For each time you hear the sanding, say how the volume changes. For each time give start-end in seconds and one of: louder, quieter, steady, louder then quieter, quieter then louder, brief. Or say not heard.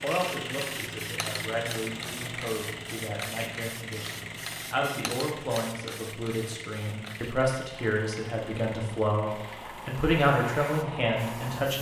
not heard.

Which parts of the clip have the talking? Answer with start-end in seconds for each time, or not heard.
0.0-11.7.